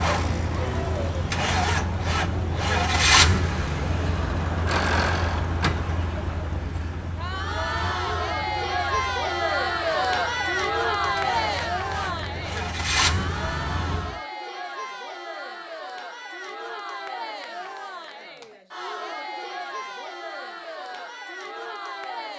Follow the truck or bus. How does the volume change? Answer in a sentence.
The volume of the truck or bus goes down, then up.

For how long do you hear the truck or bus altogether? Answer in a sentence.
The truck or bus can be heard for 14 seconds in total.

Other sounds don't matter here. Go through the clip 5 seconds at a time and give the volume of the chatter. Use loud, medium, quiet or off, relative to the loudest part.
medium, loud, loud, medium, medium.